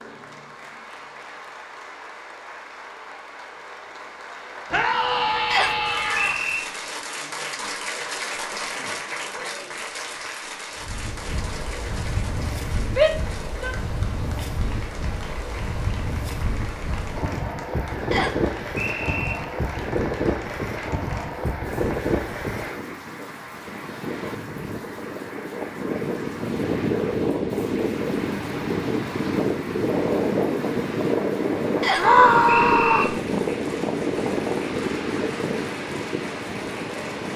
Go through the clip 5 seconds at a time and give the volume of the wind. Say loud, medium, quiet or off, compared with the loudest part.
off, off, medium, medium, medium, loud, loud, medium.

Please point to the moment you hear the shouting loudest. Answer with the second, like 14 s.
32 s.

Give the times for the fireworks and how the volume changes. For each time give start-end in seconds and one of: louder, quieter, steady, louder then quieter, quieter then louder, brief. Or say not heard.
not heard.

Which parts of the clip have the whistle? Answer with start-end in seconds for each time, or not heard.
5.5-6.7, 18.1-19.4, 31.8-33.0.